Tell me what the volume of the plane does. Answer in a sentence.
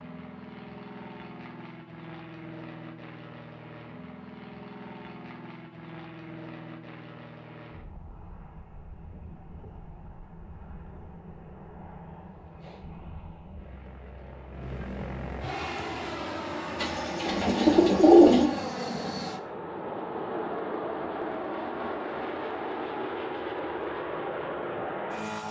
The loudness of the plane goes up.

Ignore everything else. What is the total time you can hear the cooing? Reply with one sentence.
You can hear the cooing for 2 seconds altogether.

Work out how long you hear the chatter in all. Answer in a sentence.
The chatter can't be heard in this clip.